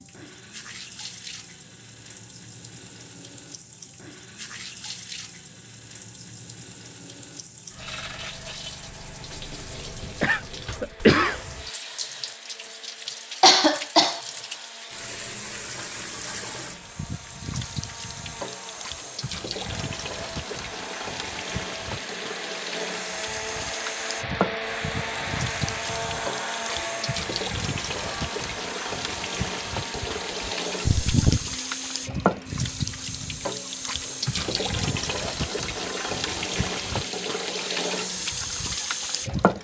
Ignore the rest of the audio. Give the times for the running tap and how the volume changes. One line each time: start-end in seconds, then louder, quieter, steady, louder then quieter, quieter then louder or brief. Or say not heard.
0.0-39.5 louder.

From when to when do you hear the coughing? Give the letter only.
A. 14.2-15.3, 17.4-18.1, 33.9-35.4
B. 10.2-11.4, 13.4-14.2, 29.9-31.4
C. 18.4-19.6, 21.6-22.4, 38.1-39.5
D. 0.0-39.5
B.